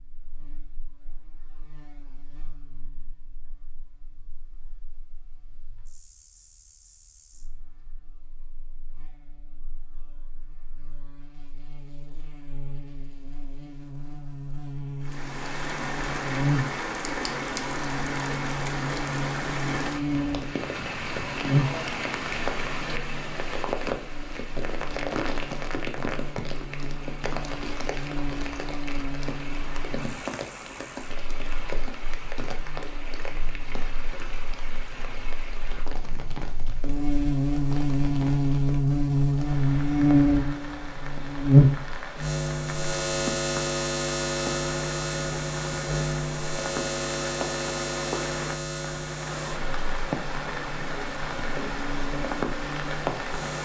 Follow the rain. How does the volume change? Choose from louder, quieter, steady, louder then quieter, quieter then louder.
quieter then louder.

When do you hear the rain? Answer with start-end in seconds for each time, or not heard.
15.0-53.6.